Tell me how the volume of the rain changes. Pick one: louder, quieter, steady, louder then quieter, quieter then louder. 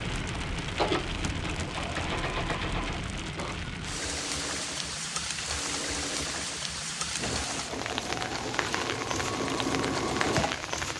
steady.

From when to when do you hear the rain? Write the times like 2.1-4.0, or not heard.
0.0-10.9.